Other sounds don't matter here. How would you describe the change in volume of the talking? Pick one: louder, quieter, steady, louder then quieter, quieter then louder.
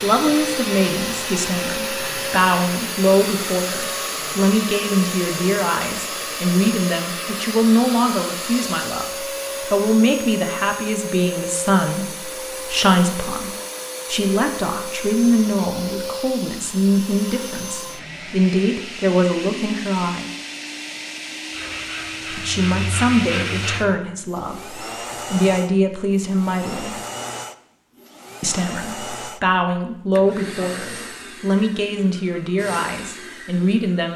steady.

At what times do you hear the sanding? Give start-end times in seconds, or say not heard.
21.4-23.9.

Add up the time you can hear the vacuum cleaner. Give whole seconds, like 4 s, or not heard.
34 s.